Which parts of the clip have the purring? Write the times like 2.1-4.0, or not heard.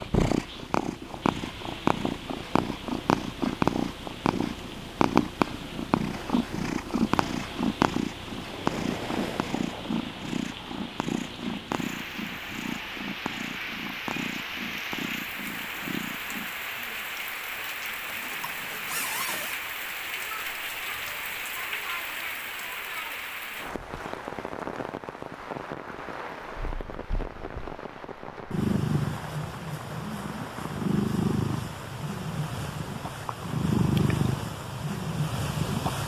0.0-16.6, 26.4-36.0.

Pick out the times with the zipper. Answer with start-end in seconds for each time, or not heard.
18.1-19.6.